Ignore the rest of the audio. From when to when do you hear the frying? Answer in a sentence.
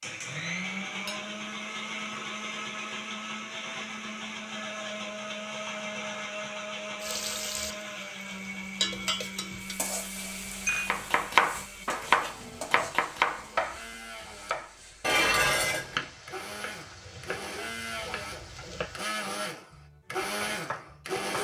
The frying can be heard from 7.0 to 19.1 s.